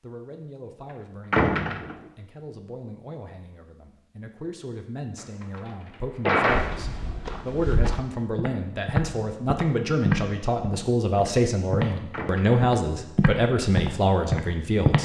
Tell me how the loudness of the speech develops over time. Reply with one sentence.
The loudness of the speech goes up.